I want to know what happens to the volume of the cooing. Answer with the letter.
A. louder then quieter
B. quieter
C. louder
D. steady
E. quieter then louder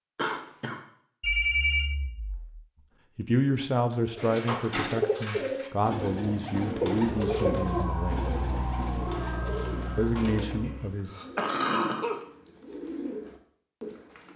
B.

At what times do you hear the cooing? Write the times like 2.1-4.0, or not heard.
4.2-14.3.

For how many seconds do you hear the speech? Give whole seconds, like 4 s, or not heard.
6 s.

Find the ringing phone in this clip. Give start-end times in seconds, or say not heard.
1.2-2.5, 9.1-10.1.